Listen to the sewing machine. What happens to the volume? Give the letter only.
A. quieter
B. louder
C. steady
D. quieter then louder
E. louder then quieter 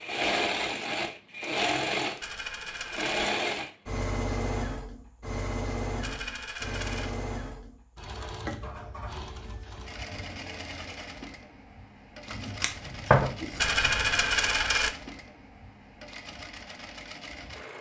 A.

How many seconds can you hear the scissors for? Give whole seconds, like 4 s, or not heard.
2 s.